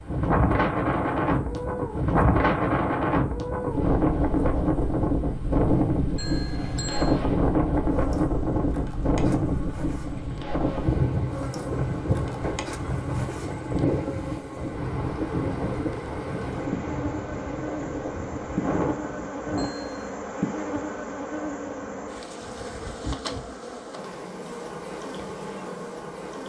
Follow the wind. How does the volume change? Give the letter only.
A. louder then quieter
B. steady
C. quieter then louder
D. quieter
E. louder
D.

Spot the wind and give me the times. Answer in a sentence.
The wind can be heard from 0.0 to 19.7 s.